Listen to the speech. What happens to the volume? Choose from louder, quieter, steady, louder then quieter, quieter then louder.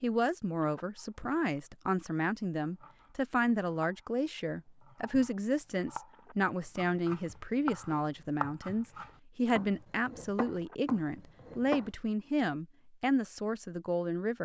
steady.